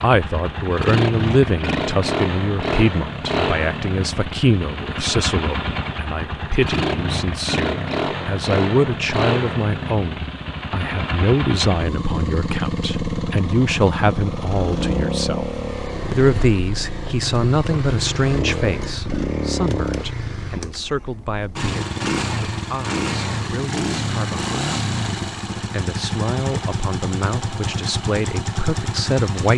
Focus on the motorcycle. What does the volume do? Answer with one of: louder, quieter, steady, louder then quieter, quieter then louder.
steady.